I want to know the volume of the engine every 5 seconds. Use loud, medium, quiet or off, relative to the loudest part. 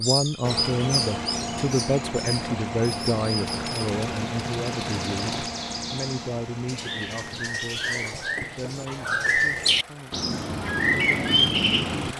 loud, medium, medium.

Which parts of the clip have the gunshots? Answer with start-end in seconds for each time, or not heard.
3.5-5.5.